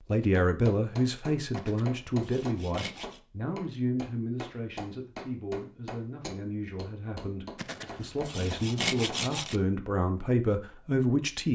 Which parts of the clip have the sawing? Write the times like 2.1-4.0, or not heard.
1.6-3.2, 7.5-9.6.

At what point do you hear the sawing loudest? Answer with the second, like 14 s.
9 s.